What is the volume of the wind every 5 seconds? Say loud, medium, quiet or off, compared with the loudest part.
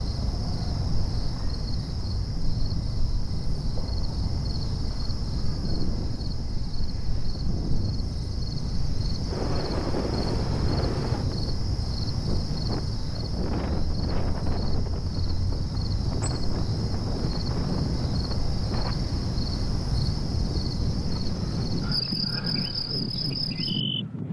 medium, loud, loud, loud, loud.